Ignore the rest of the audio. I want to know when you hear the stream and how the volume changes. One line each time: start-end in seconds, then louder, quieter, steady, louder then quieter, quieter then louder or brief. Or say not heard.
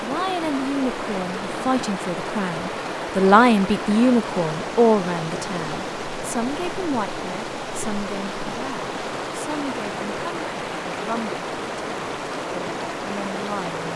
0.0-13.9 steady.